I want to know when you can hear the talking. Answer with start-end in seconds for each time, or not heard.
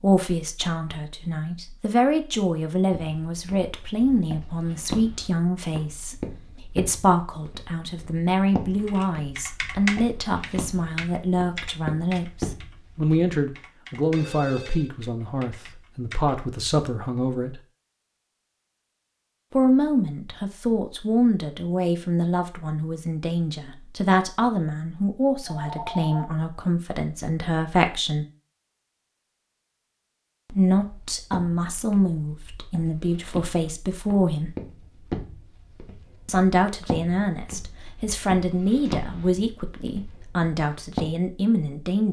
0.0-17.6, 19.5-28.2, 30.5-34.5, 36.2-42.0.